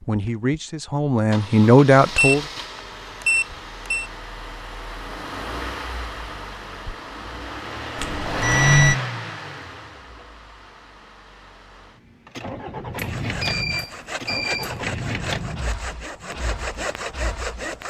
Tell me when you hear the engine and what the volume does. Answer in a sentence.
The engine can be heard from 0.0 to 17.8 s, getting louder then quieter.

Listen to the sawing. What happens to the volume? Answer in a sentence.
The volume of the sawing goes up.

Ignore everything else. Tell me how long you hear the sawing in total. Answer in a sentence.
The sawing can be heard for 5 seconds in total.